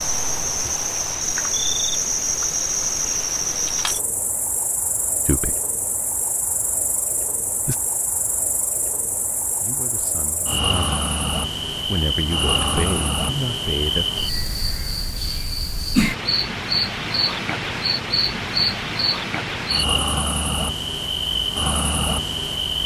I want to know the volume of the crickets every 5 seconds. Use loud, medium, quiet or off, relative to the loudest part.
loud, medium, loud, loud, loud.